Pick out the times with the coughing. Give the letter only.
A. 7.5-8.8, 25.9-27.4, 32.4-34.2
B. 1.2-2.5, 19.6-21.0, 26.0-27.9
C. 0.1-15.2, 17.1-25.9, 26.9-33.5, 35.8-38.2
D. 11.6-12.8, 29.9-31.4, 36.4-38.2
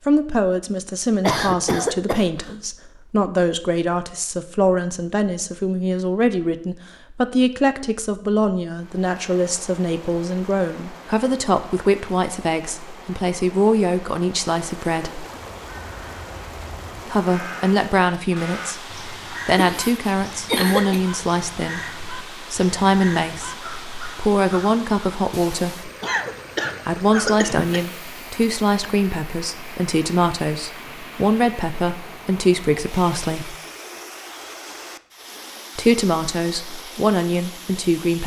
B.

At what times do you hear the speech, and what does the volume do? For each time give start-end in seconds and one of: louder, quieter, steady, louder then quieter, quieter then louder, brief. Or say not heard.
0.1-15.2 steady
17.1-25.9 steady
26.9-33.5 steady
35.8-38.2 brief.